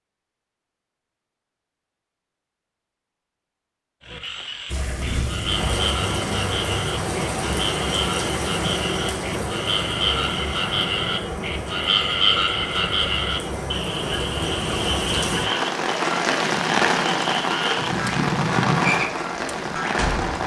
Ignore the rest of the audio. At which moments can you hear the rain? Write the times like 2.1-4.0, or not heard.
4.7-20.4.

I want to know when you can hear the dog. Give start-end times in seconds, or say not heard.
not heard.